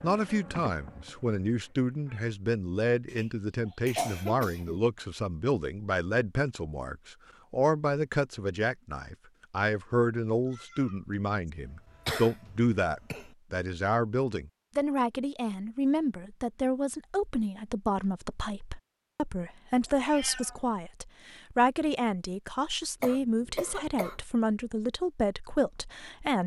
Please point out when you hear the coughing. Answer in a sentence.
You can hear the coughing from 3.1 to 4.8 s, from 11.7 to 13.3 s and from 23.0 to 24.2 s.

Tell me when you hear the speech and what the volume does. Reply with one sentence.
The speech can be heard from 0.0 to 26.4 s, at a steady volume.